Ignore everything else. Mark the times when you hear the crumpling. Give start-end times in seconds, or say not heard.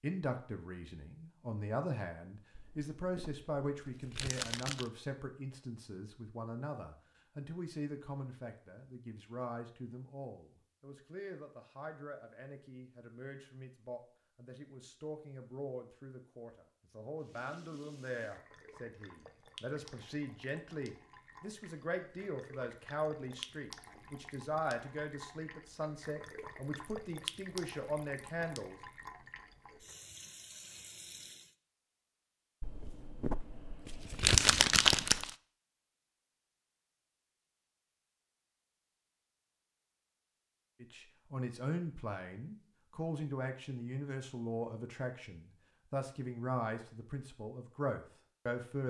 2.5-4.9, 32.6-35.4.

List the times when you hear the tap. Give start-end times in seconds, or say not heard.
17.2-31.6.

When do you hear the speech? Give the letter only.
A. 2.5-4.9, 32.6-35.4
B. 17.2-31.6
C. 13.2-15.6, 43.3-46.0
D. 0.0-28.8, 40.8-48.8
D.